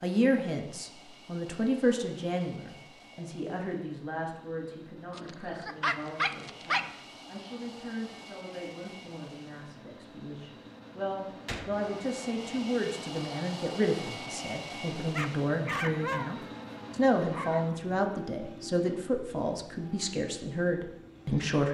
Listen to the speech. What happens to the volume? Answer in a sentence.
The volume of the speech goes down, then up.